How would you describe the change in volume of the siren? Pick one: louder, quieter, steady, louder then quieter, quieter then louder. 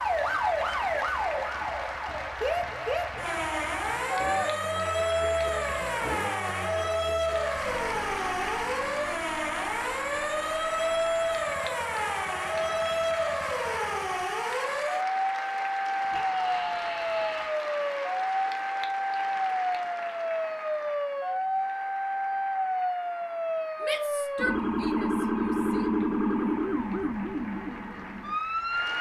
steady.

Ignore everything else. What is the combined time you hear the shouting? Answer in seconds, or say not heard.
5 s.